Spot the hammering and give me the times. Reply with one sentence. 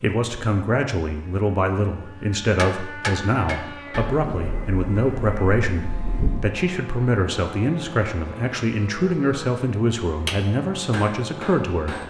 The hammering can be heard from 2.5 to 4.0 s and from 10.2 to 12.0 s.